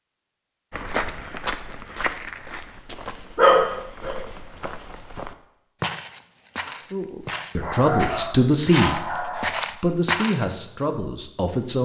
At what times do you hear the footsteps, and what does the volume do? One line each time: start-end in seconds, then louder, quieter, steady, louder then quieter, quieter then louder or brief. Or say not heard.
0.7-10.5 quieter then louder.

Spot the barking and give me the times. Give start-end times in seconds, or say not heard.
3.4-4.2, 7.6-9.6.